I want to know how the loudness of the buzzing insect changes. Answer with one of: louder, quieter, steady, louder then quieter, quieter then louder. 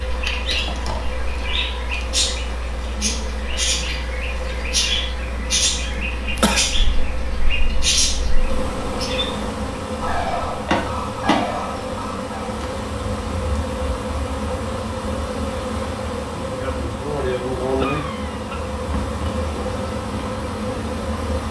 louder.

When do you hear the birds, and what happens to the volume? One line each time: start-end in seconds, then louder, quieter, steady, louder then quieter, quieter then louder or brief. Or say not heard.
0.0-12.6 steady.